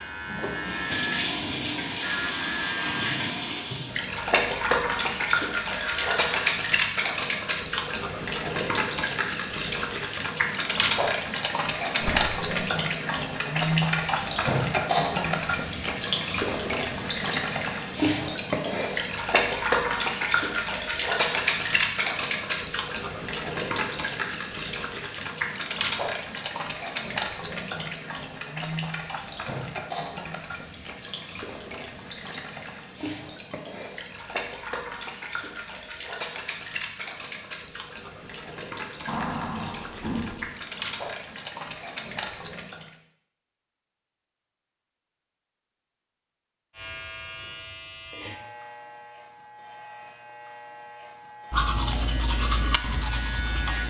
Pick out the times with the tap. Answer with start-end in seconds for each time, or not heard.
0.0-43.0.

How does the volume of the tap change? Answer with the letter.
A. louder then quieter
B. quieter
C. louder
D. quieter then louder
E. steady
B.